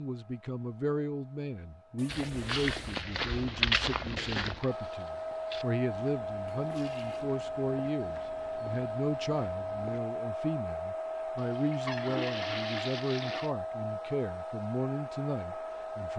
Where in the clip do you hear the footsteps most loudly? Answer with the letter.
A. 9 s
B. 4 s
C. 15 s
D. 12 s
B.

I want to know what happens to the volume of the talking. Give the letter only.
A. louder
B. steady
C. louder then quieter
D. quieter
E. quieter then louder
B.